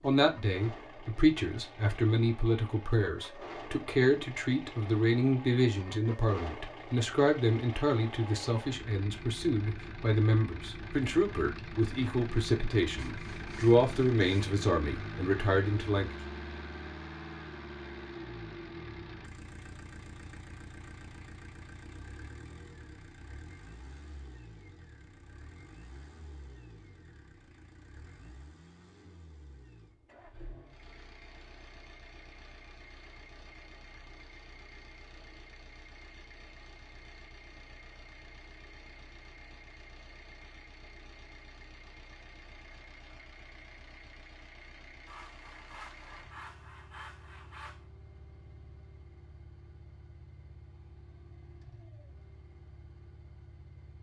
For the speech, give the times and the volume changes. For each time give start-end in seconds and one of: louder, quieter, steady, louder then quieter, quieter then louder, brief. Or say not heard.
0.0-16.1 steady.